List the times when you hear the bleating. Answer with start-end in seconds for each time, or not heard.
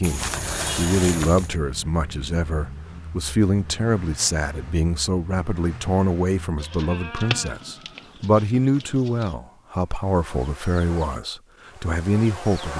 0.0-1.5, 6.5-9.3.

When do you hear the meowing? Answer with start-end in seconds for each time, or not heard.
not heard.